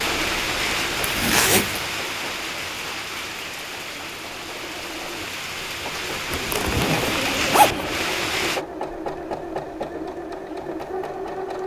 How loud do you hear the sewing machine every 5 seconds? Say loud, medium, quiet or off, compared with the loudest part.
medium, loud, loud.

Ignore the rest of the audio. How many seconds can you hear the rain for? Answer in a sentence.
The rain can be heard for 9 seconds in total.